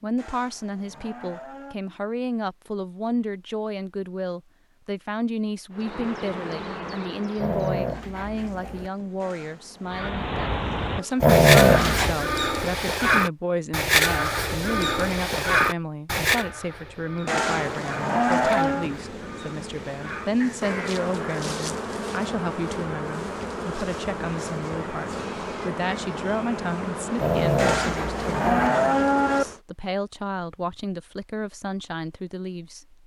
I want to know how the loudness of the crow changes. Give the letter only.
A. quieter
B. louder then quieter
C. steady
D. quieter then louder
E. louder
A.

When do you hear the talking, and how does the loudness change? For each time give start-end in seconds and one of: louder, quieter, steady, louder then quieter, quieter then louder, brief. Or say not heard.
0.0-33.0 steady.